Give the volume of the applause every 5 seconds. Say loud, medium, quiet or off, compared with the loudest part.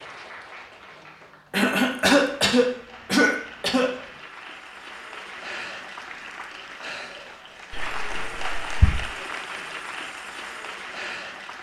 medium, loud, loud.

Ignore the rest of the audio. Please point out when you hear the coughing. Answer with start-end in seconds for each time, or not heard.
1.5-3.9, 7.7-9.1.